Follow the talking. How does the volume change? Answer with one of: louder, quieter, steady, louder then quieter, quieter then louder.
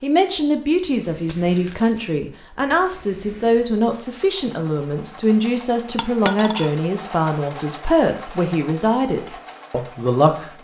steady.